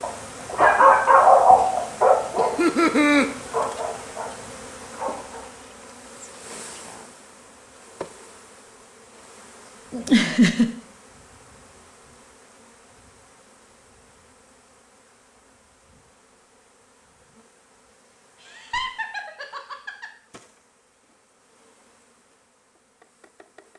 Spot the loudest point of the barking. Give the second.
1 s.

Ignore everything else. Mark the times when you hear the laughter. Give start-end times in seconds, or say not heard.
2.4-3.2, 9.9-10.7, 18.4-20.1.